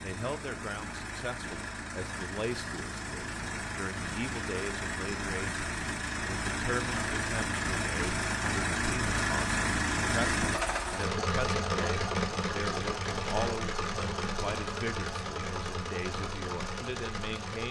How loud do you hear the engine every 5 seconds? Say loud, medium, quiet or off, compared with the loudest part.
medium, loud, loud, medium.